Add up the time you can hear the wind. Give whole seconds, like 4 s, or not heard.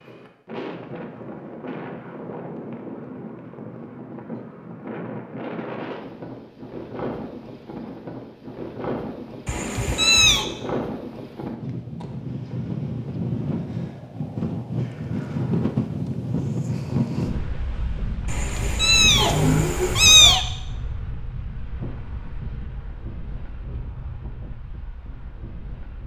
26 s.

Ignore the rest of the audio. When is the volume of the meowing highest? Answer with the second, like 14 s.
20 s.